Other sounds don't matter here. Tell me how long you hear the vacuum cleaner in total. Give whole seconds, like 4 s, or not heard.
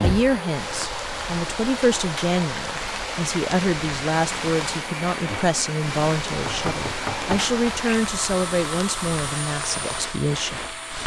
11 s.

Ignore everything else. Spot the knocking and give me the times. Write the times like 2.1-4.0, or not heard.
0.0-0.4, 6.2-7.5.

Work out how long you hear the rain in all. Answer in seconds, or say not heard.
11 s.